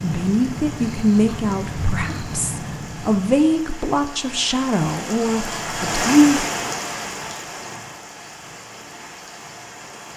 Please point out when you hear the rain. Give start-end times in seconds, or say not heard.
0.0-10.1.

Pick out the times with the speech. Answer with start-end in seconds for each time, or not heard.
0.0-6.5.